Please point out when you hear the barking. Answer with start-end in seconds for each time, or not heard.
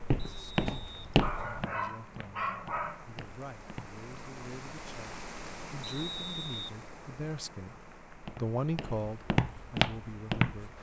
0.7-3.1.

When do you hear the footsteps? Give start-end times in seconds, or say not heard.
0.0-4.0, 8.2-10.7.